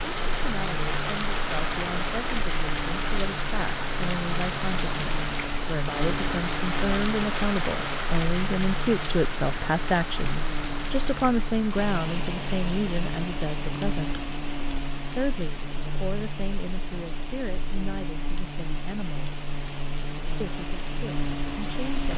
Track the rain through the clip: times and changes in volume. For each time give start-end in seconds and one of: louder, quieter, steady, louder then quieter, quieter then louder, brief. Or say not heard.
0.0-22.1 quieter.